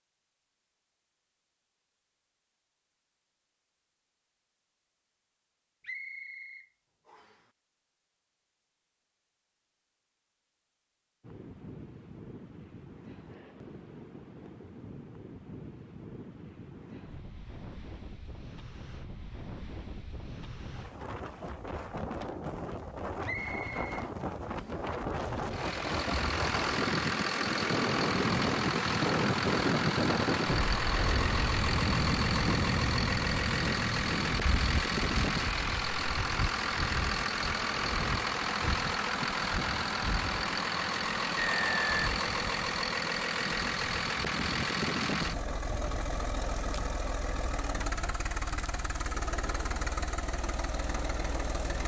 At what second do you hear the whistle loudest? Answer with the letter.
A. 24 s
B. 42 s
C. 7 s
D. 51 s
B.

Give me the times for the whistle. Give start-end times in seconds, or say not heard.
5.8-7.4, 23.2-24.8, 41.4-42.1.